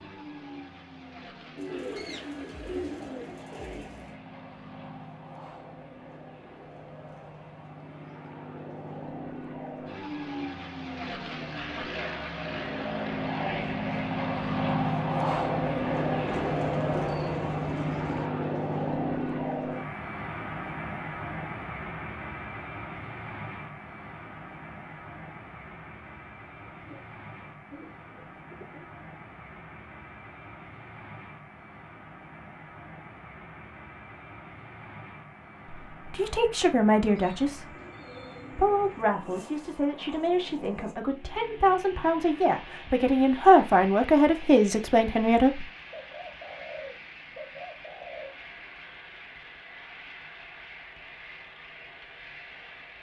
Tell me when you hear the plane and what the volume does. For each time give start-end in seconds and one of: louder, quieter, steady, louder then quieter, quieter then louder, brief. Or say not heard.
0.0-52.9 louder then quieter.